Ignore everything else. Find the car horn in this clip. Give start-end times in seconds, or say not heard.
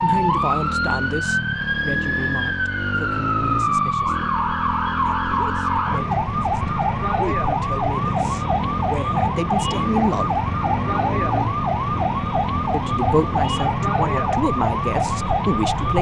not heard.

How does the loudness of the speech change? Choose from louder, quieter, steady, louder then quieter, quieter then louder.
quieter then louder.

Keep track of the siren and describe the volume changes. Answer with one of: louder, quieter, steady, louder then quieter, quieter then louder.
steady.